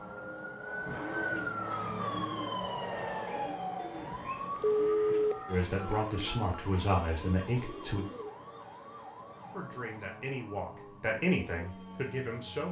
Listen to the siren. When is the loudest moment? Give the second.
2 s.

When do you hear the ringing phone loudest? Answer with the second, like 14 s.
5 s.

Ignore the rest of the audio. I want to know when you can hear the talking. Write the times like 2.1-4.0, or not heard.
5.5-8.1, 9.5-12.6.